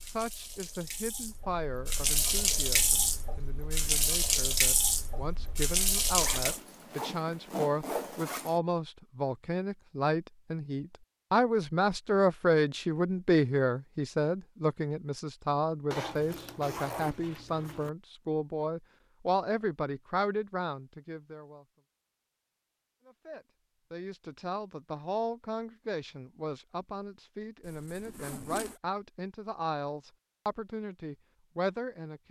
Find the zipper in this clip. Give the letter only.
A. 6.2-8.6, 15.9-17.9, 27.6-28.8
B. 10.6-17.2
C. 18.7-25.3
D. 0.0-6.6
A.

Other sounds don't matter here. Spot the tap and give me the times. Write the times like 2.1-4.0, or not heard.
0.0-6.6.